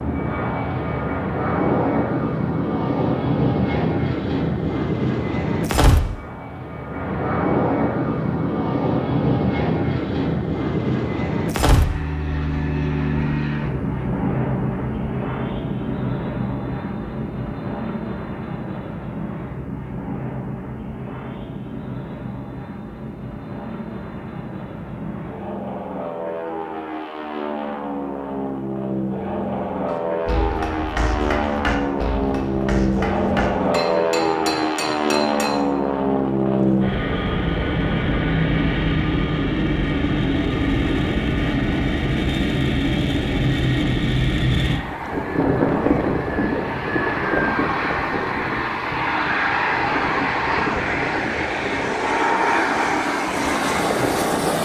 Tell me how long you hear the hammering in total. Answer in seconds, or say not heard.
6 s.